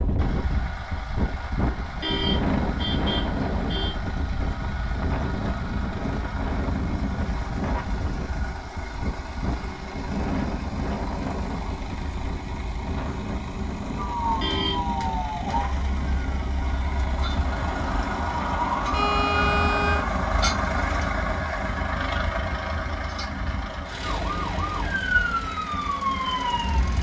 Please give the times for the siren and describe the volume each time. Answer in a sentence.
The siren can be heard from 13.9 to 20.1 s, getting quieter then louder; and briefly from 24.0 to 26.9 s.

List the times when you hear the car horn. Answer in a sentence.
The car horn can be heard from 2.0 to 4.0 s, from 14.4 to 14.9 s and from 18.9 to 20.1 s.